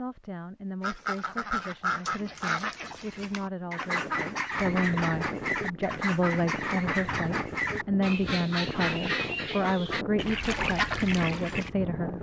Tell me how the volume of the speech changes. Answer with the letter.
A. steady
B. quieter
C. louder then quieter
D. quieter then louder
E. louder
E.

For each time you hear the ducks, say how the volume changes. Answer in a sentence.
The ducks can be heard from 0.8 to 11.7 s, at a steady volume.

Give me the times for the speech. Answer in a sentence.
The speech can be heard from 0.0 to 12.1 s.